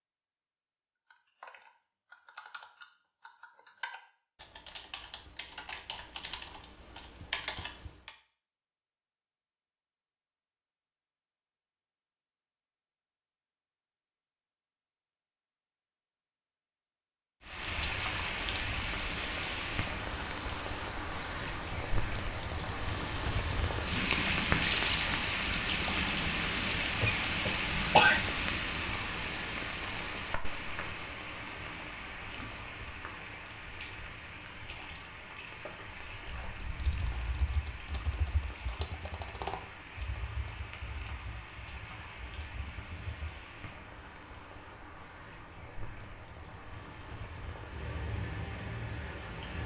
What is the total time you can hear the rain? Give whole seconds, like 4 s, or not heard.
32 s.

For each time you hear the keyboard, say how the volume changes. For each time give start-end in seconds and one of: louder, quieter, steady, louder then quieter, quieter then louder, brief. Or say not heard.
1.1-8.1 louder
36.3-43.5 louder then quieter.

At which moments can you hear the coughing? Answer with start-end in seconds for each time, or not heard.
27.0-28.2.